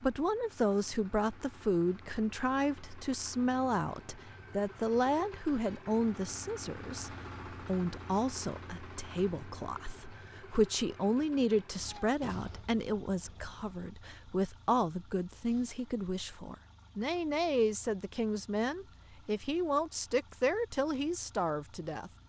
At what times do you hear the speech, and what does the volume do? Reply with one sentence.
You can hear the speech from 0.0 to 22.1 s, at a steady volume.